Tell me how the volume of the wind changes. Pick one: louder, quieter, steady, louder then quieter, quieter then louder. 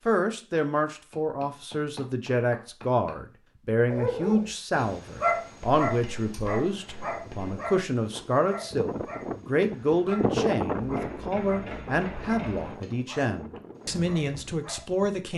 louder then quieter.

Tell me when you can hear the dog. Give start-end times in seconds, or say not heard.
3.9-15.1.